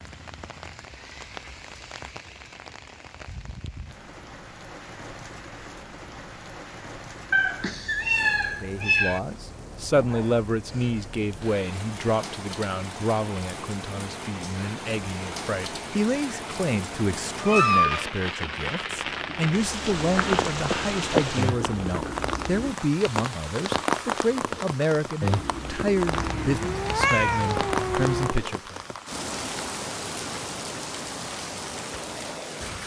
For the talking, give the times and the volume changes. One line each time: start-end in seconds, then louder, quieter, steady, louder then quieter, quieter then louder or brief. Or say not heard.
8.6-28.8 steady.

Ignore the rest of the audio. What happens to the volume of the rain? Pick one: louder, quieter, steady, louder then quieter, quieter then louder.
louder.